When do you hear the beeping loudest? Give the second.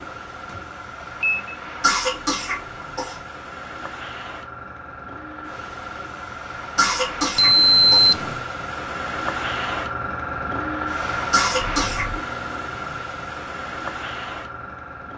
8 s.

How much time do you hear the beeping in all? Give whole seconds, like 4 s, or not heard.
3 s.